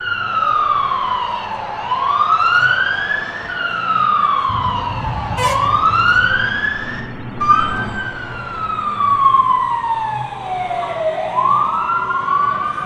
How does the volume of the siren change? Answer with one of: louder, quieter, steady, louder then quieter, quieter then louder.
steady.